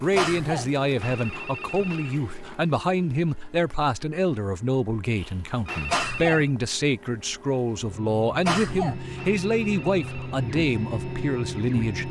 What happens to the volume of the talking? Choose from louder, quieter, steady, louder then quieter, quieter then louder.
steady.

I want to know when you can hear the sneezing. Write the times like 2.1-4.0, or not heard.
0.1-0.7, 5.8-6.5, 8.4-9.0.